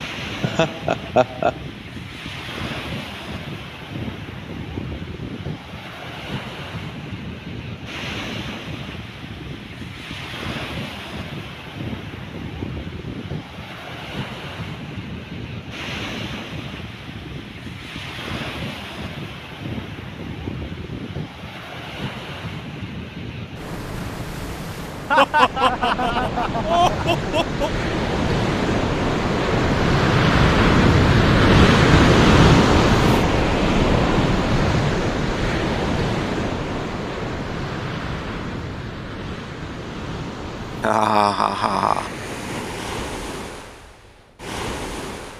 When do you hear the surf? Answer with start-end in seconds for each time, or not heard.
0.0-45.3.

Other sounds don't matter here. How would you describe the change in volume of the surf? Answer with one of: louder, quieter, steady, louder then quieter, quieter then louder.
louder then quieter.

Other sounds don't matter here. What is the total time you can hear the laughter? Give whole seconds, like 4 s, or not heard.
5 s.